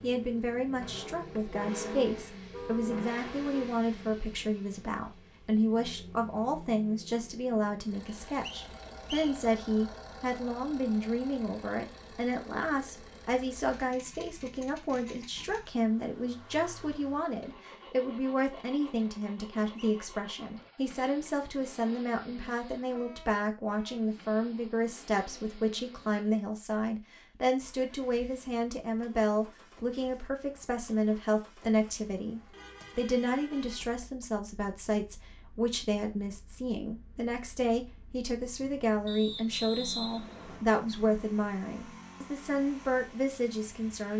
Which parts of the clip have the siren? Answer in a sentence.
You can't hear the siren here.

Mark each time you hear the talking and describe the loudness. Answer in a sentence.
The talking can be heard from 0.0 to 44.1 s, at a steady volume.